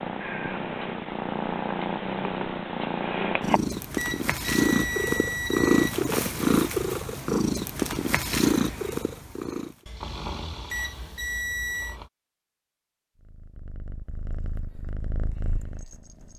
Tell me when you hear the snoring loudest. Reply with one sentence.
The volume of the snoring peaks at 10 seconds.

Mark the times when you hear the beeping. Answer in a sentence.
The beeping can be heard from 4.0 to 6.0 s and from 10.7 to 12.0 s.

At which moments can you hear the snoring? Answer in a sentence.
You can hear the snoring from 9.8 to 12.1 s.